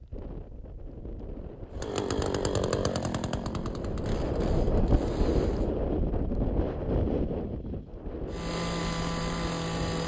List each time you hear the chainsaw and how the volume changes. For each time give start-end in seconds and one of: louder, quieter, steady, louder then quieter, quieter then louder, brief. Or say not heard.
1.7-5.7 quieter
8.3-10.0 brief.